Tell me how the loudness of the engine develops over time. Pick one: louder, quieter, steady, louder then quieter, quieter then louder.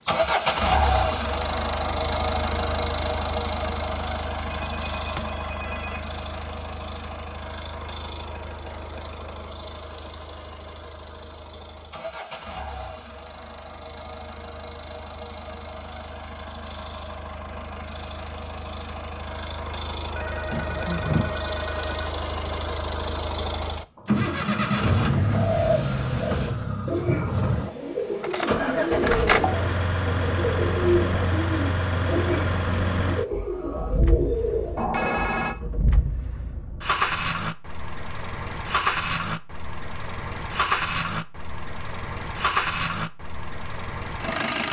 quieter then louder.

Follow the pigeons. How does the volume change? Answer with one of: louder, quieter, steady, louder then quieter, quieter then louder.
steady.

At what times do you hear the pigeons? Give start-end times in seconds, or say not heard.
25.1-35.0.